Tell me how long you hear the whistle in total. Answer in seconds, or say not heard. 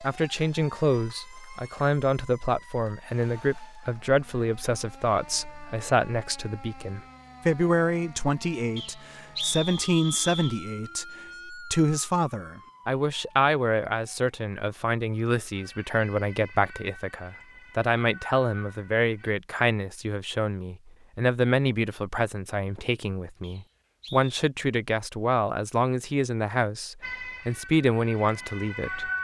3 s.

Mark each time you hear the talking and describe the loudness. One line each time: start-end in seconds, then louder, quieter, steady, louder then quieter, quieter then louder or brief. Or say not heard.
0.0-29.1 steady.